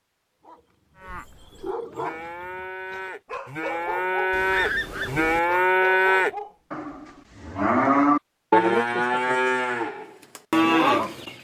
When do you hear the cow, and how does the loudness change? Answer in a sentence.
The cow can be heard from 0.9 to 11.3 s, getting louder.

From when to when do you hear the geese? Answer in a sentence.
The geese can be heard from 4.3 to 5.4 s.